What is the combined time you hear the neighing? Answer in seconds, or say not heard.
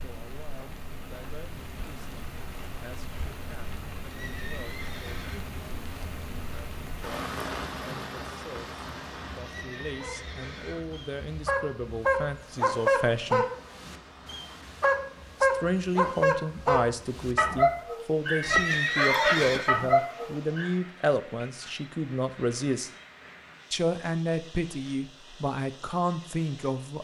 4 s.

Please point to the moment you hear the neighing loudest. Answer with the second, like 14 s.
19 s.